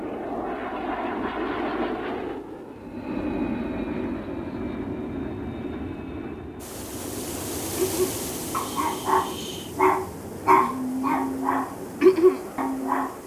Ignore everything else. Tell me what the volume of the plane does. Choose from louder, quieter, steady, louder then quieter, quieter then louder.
quieter.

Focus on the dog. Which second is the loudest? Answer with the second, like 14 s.
12 s.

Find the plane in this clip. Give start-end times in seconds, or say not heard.
0.0-13.2.